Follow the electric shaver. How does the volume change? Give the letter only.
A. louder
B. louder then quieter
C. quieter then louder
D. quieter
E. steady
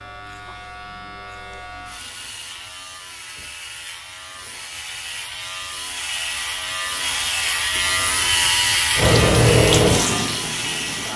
A.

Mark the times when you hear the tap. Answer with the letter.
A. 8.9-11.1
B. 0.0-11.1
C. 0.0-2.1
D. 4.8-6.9
A.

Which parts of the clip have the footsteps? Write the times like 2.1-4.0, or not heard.
not heard.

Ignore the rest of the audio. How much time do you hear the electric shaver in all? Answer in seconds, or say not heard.
11 s.